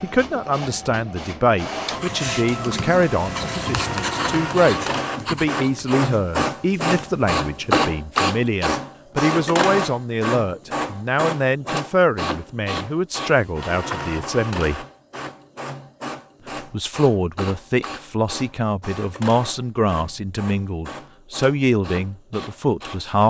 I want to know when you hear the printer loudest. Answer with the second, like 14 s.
8 s.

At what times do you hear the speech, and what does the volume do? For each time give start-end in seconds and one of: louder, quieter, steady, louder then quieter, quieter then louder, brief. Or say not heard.
0.0-14.8 steady
16.7-23.2 steady.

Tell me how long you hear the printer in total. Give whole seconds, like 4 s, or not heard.
23 s.